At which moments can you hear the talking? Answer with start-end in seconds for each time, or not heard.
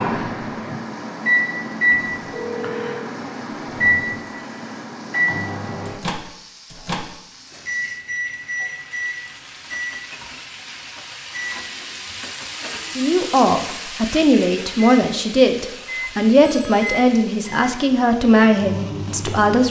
12.9-19.6.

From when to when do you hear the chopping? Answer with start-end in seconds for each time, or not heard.
not heard.